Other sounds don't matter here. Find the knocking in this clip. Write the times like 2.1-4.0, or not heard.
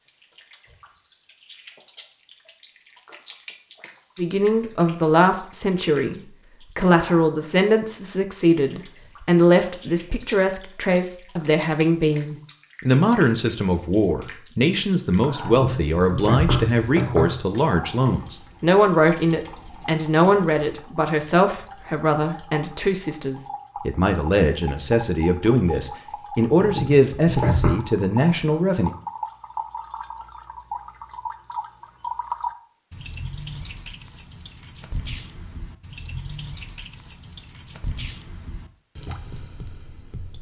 15.4-17.4, 26.6-27.8.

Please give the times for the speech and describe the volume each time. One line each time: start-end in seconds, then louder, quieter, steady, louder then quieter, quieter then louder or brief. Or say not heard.
4.2-28.9 steady.